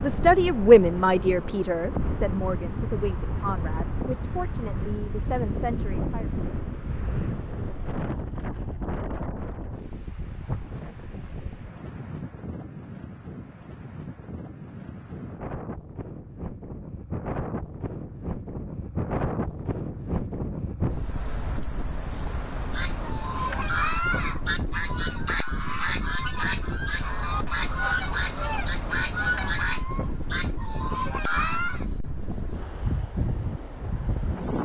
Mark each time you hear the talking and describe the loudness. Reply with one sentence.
You can hear the talking from 0.0 to 6.3 s, getting quieter.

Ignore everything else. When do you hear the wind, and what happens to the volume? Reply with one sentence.
The wind can be heard from 0.0 to 34.6 s, at a steady volume.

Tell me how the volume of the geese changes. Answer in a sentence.
The loudness of the geese stays about the same.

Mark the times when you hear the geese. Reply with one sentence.
The geese can be heard from 22.7 to 31.9 s.